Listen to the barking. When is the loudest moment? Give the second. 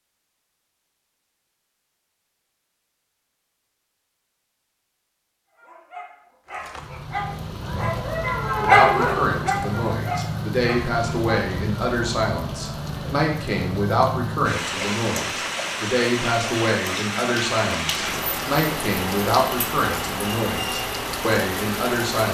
9 s.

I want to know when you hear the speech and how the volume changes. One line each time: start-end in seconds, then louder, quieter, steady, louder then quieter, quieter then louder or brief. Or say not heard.
8.6-22.2 steady.